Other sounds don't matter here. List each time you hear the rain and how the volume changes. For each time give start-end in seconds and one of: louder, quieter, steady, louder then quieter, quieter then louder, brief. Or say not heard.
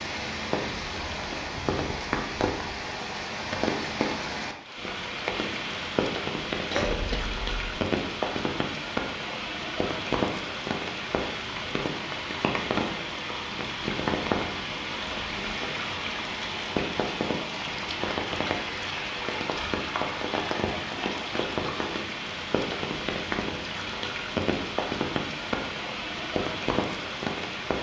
0.0-27.7 steady.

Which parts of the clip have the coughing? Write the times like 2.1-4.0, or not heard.
6.7-7.8.